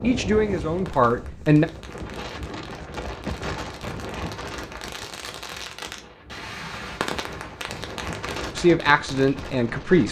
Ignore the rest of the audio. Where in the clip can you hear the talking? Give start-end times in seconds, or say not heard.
0.0-1.6, 8.6-10.0.